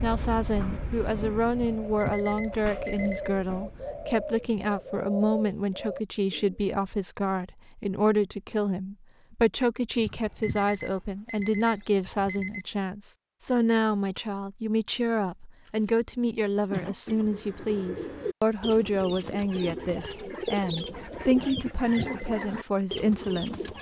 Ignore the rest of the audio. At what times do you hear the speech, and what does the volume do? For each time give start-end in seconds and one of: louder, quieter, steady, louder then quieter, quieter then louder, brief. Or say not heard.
0.0-23.6 steady.